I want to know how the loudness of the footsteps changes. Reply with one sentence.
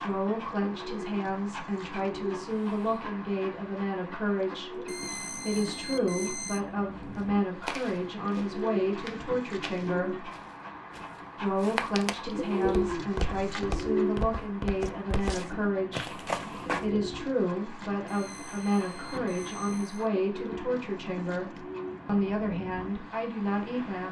The loudness of the footsteps goes down, then up.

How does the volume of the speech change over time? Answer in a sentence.
The volume of the speech stays about the same.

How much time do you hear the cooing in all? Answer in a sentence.
You can hear the cooing for 12 seconds altogether.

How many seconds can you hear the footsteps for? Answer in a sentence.
The footsteps can be heard for 10 seconds in total.